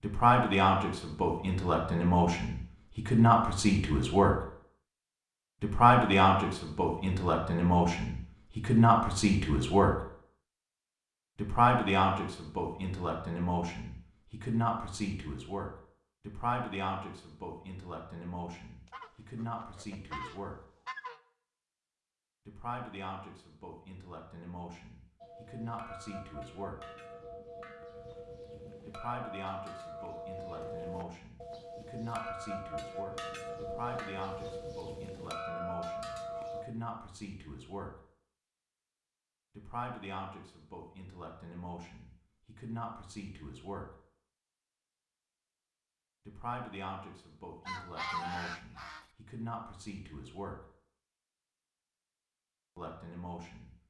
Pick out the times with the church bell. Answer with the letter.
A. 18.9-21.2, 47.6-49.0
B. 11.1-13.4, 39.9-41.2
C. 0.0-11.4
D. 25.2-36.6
D.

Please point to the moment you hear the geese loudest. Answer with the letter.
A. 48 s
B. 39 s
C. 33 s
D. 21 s
A.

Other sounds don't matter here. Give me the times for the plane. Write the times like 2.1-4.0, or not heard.
not heard.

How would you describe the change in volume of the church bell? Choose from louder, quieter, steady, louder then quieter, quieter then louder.
louder.